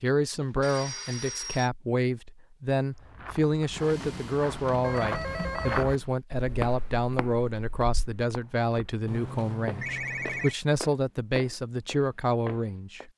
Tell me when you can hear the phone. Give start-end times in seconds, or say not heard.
0.3-1.7, 4.8-5.9, 9.1-10.6.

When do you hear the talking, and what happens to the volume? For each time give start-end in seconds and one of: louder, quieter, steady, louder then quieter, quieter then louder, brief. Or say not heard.
0.0-13.1 steady.